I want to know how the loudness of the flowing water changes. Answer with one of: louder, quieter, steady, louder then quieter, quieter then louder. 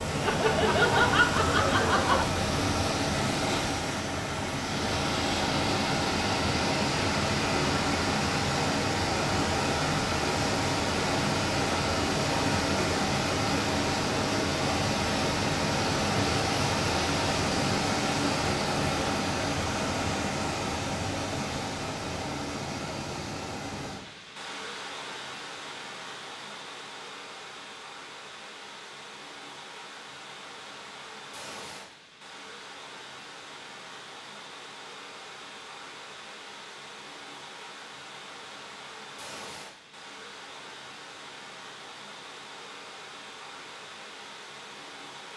quieter.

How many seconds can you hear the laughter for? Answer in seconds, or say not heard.
2 s.